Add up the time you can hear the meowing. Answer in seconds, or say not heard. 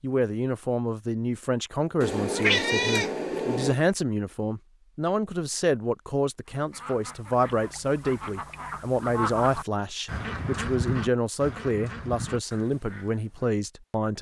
2 s.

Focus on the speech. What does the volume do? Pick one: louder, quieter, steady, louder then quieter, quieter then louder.
steady.